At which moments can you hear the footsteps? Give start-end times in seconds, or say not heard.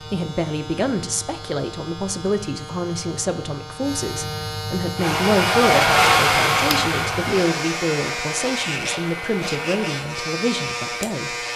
not heard.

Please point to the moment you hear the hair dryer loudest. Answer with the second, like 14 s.
6 s.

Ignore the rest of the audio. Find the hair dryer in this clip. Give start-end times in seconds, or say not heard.
5.0-10.1.